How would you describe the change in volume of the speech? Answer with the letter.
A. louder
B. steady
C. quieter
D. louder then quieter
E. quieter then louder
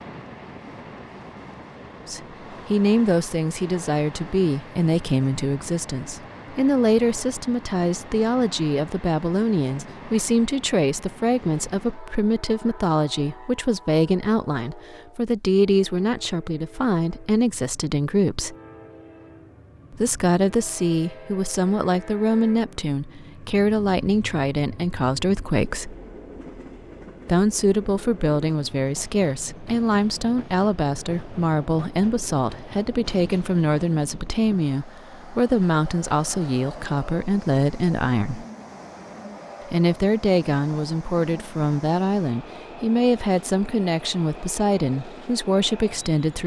B.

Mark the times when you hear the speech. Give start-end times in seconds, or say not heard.
2.0-18.6, 19.9-25.9, 27.2-38.5, 39.6-46.4.